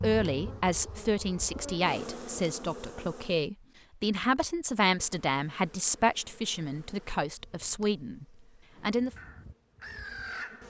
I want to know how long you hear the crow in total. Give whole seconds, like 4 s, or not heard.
2 s.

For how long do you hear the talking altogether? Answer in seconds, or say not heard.
9 s.